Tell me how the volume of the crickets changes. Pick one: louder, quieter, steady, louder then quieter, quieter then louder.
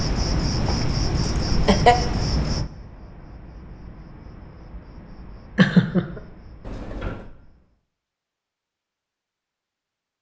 quieter.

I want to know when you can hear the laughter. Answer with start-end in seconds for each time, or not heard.
1.2-1.9, 5.5-6.2.